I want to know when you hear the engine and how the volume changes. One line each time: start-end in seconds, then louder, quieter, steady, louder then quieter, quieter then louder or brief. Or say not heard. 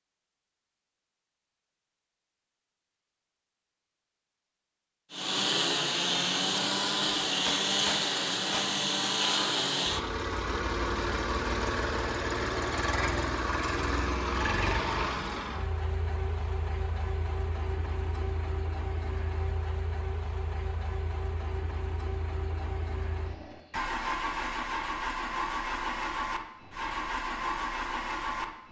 5.1-28.6 quieter then louder.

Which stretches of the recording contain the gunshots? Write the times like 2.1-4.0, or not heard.
7.3-8.8.